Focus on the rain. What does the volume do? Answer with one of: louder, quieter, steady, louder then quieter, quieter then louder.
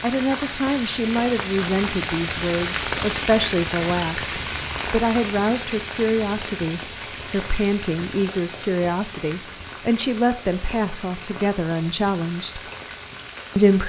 quieter.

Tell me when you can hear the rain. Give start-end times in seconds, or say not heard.
0.0-13.8.